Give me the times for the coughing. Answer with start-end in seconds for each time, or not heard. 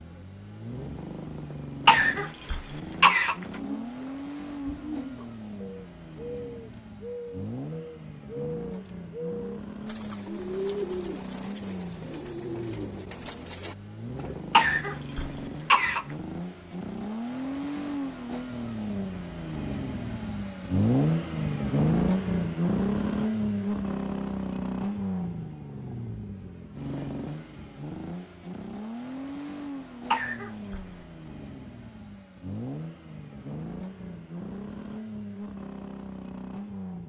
1.9-3.4, 14.5-16.1, 30.1-30.9.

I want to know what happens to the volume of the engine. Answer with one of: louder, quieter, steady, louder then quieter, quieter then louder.
louder then quieter.